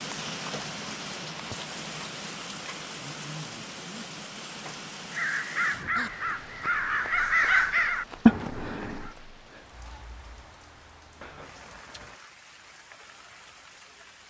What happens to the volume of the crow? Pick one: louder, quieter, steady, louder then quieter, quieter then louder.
louder.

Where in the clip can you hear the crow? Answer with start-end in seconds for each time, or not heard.
5.1-9.2.